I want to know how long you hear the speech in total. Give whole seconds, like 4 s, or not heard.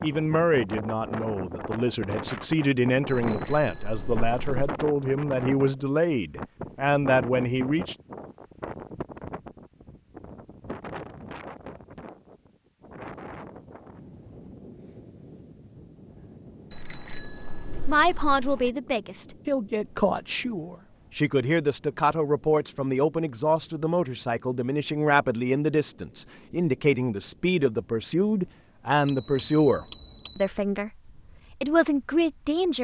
23 s.